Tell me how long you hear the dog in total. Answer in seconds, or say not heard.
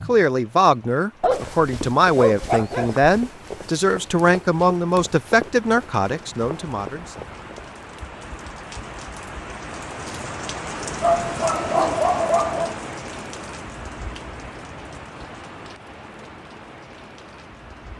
4 s.